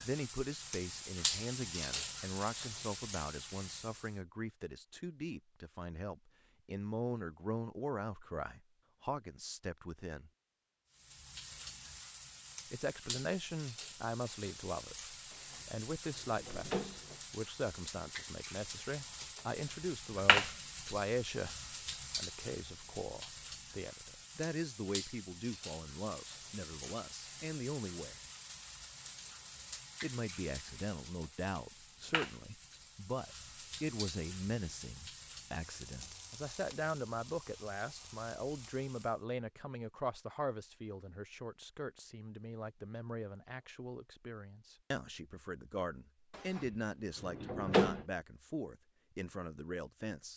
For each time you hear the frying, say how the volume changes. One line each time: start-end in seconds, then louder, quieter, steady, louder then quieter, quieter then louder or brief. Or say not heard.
0.0-4.2 louder then quieter
10.9-39.2 louder then quieter.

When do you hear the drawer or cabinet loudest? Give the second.
48 s.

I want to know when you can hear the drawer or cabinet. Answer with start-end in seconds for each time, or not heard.
15.3-17.2, 46.4-48.0.